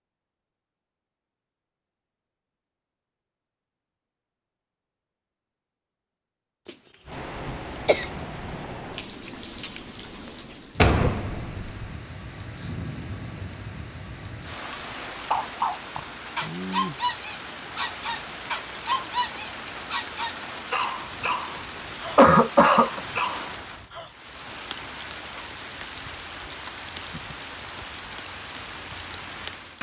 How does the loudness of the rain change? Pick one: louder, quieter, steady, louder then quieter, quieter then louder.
steady.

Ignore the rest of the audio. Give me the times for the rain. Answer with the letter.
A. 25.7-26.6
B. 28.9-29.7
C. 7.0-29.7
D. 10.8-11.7
C.